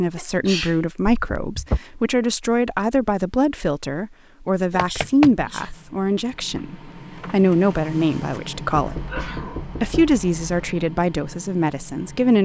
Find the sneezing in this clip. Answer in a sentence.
The sneezing can be heard from 0.1 to 0.8 s, from 4.7 to 5.7 s and from 8.9 to 9.7 s.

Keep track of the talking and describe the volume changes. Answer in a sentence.
The loudness of the talking stays about the same.